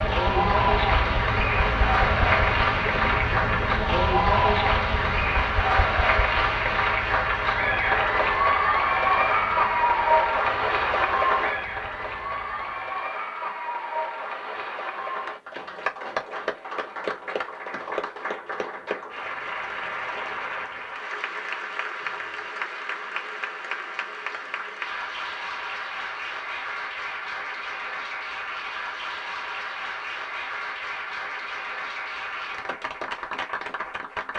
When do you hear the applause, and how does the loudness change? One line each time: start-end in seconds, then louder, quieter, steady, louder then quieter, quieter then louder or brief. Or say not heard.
0.0-34.3 quieter.